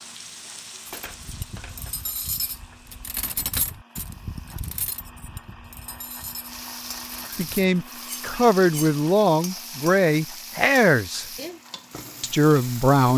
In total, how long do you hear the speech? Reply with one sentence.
You can hear the speech for 5 seconds altogether.